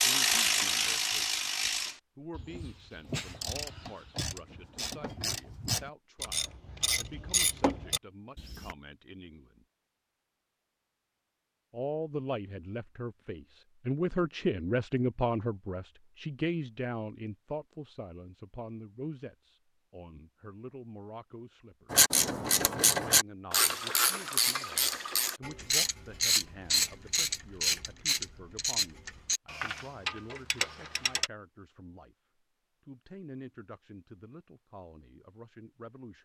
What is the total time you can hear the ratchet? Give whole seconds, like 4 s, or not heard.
18 s.